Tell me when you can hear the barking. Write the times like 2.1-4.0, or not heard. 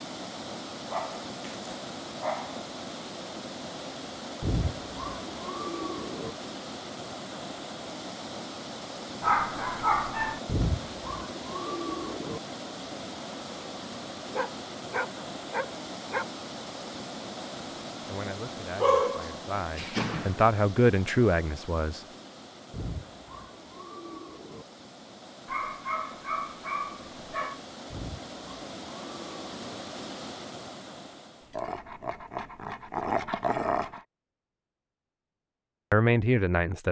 0.8-2.6, 9.2-10.4, 14.3-16.2, 18.8-20.4, 25.4-27.6, 31.6-34.0.